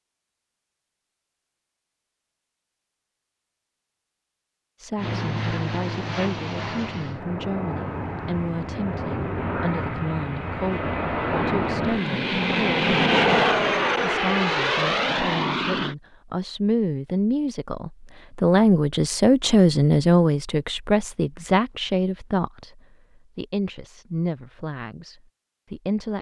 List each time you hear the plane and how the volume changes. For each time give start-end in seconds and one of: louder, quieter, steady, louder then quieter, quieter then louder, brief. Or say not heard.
5.0-15.9 louder.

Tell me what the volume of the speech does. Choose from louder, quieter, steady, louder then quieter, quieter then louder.
louder then quieter.